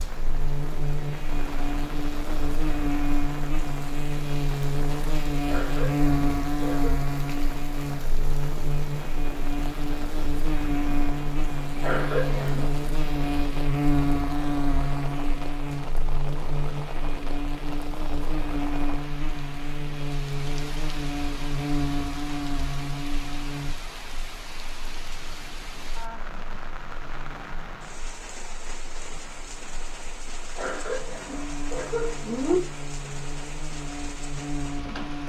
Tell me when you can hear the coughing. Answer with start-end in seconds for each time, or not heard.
5.5-7.0, 11.8-12.7, 30.6-32.5.